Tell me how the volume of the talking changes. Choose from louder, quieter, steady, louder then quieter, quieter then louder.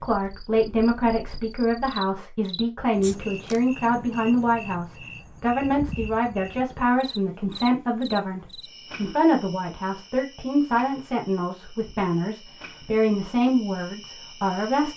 steady.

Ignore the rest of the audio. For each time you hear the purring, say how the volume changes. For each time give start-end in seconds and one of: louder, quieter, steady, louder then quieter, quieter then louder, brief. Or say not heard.
not heard.